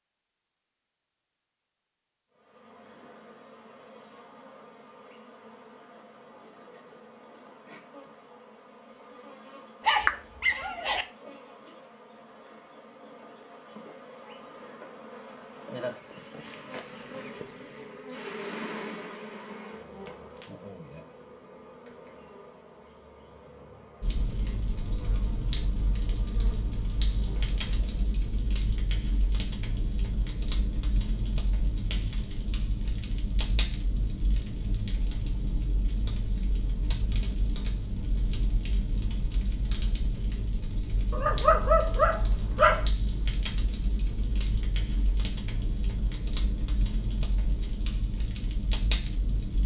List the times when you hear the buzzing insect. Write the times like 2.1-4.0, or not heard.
2.3-28.1.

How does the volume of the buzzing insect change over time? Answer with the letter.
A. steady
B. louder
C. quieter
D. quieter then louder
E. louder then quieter
E.